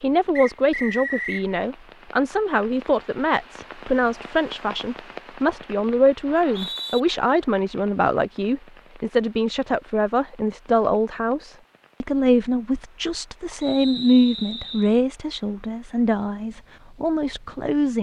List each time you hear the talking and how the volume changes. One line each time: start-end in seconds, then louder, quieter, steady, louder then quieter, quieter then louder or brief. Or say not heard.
0.0-17.9 steady.